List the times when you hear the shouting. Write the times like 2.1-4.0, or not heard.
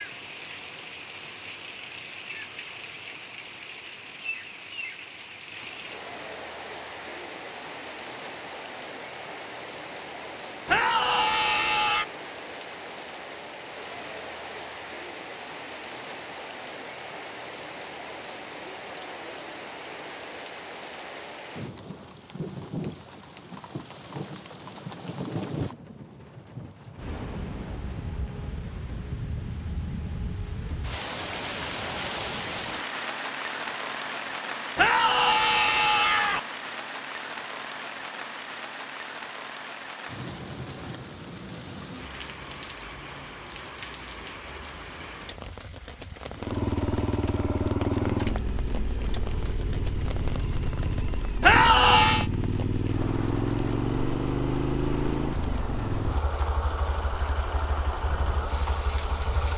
10.7-12.1, 34.8-36.4, 51.4-52.2.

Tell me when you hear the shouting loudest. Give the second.
52 s.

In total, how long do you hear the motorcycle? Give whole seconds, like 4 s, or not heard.
13 s.